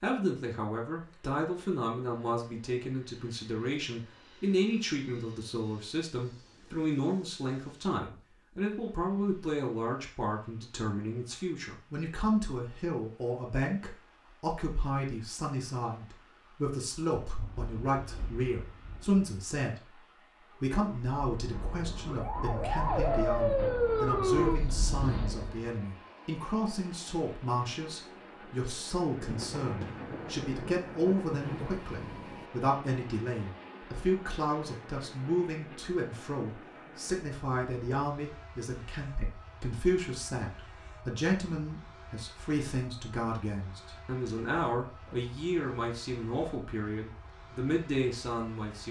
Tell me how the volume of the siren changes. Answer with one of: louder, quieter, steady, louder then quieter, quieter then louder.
louder then quieter.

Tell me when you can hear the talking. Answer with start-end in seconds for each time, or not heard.
0.0-48.8.